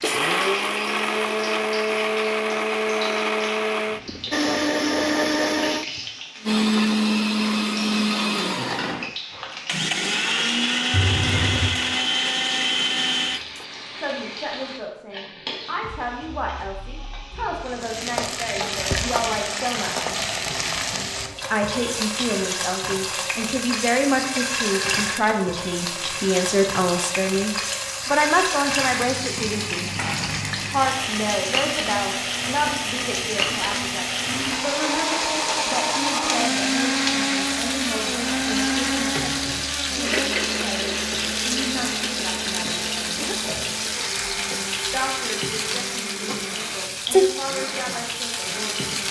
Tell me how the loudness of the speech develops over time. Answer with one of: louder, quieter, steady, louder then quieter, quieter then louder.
louder then quieter.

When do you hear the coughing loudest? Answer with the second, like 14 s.
11 s.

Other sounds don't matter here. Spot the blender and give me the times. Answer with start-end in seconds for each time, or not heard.
0.0-13.7, 34.2-49.0.